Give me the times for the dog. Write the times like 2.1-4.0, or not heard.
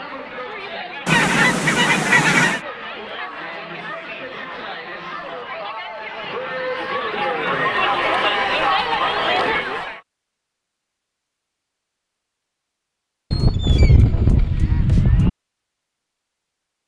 not heard.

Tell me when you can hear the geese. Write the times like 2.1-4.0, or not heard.
1.1-2.6, 13.3-15.3.